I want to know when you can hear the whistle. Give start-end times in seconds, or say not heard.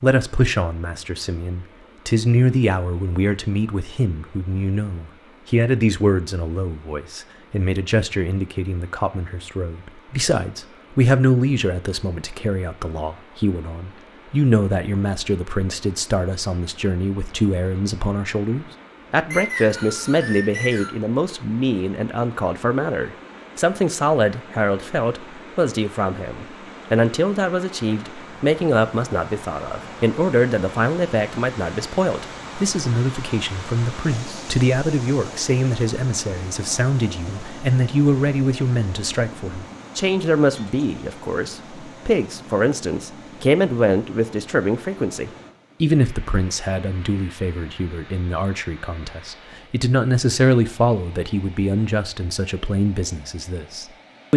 19.3-20.9.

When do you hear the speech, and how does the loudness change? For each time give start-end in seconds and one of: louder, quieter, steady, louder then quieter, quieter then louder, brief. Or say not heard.
0.0-54.3 steady.